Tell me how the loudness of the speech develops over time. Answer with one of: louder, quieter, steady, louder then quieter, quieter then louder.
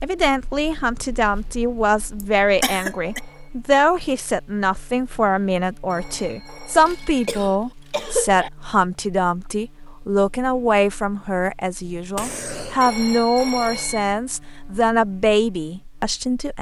steady.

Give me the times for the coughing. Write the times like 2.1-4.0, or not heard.
2.2-3.2, 6.8-8.5, 12.2-12.9.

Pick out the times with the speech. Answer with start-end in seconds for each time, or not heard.
0.0-16.5.